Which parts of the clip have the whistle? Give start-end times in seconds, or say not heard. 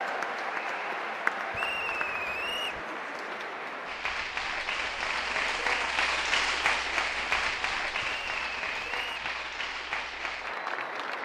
1.5-2.8, 8.0-9.3.